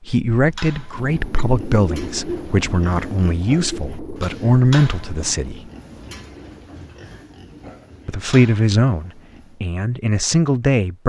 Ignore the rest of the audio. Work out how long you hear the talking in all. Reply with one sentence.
You can hear the talking for 9 seconds altogether.